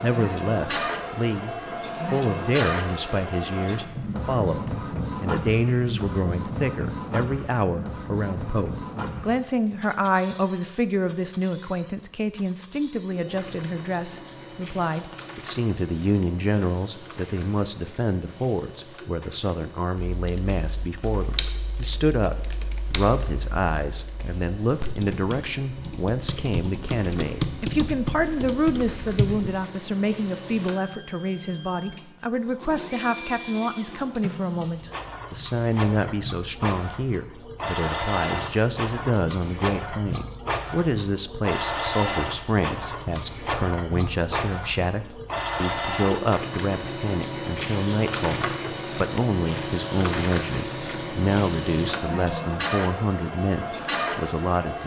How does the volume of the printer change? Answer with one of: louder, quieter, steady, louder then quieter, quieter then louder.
quieter then louder.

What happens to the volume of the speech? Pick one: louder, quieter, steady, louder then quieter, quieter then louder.
steady.